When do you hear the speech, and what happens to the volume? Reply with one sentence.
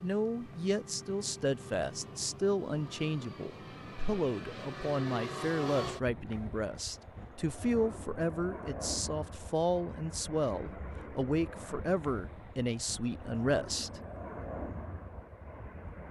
You can hear the speech from 0.0 to 14.0 s, at a steady volume.